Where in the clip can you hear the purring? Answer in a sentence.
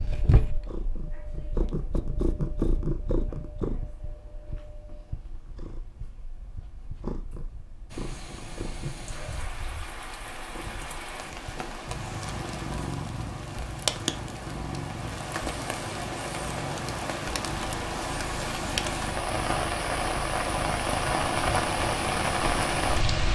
The purring can be heard from 0.0 to 23.3 s.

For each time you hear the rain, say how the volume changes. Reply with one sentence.
You can hear the rain from 7.9 to 23.3 s, getting louder.